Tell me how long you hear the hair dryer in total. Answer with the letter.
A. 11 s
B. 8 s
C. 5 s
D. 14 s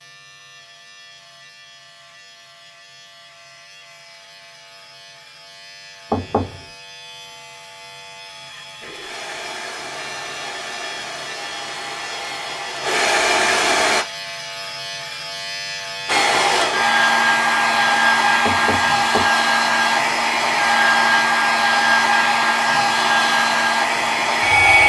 D.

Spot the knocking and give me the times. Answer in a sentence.
You can hear the knocking from 6.1 to 6.7 s and from 18.4 to 19.4 s.